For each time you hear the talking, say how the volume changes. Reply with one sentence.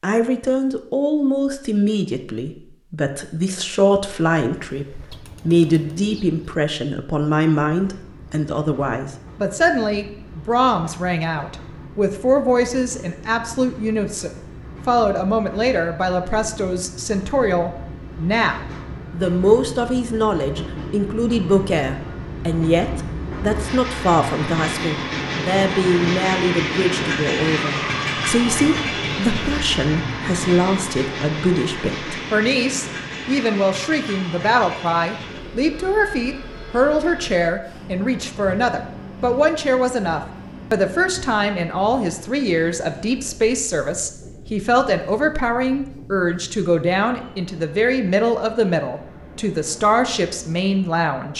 The talking can be heard from 0.0 to 51.3 s, at a steady volume.